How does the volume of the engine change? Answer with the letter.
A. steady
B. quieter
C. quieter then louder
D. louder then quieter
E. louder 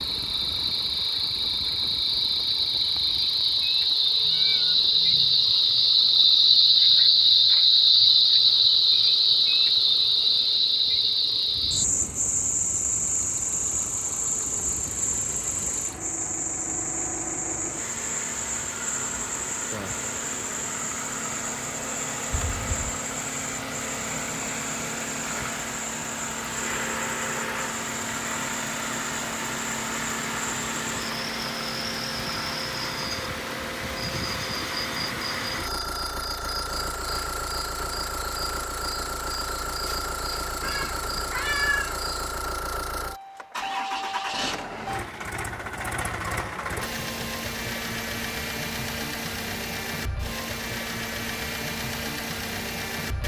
E.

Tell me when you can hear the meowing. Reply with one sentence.
The meowing can be heard from 4.2 to 5.5 s, from 22.3 to 22.8 s and from 40.6 to 42.0 s.